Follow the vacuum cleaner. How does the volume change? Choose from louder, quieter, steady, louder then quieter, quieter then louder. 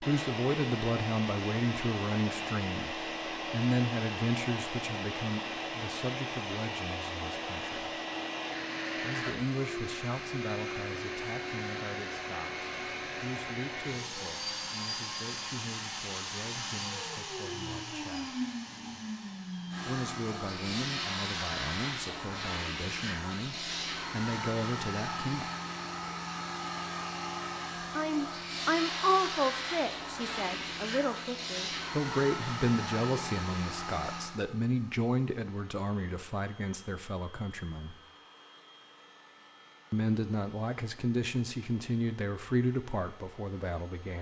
quieter.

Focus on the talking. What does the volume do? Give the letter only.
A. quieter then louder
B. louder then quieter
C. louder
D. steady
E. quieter
A.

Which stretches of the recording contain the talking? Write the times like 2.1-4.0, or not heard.
0.0-7.8, 8.9-18.4, 19.9-25.5, 27.9-38.0, 39.9-44.1.